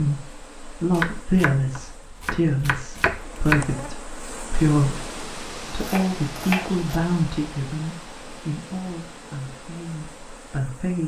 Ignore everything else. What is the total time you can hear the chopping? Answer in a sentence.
The chopping can be heard for 4 seconds in total.